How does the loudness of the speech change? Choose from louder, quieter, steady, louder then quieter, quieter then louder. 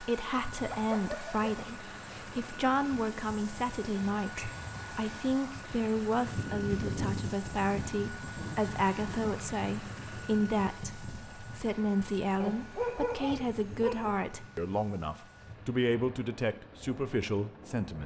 steady.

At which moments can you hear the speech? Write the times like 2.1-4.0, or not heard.
0.0-18.0.